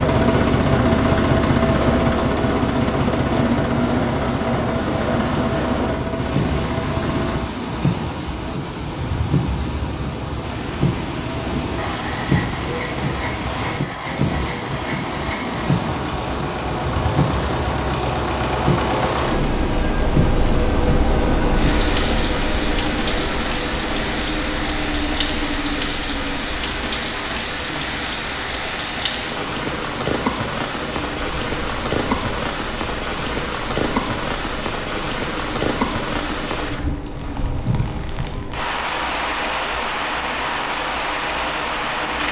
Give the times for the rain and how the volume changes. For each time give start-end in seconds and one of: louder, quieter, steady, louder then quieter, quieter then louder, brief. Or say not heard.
0.1-42.2 steady.